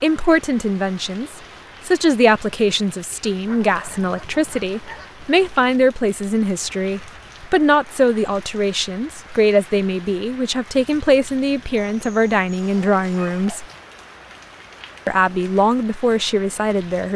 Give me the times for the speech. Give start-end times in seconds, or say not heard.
0.0-13.7, 15.1-17.1.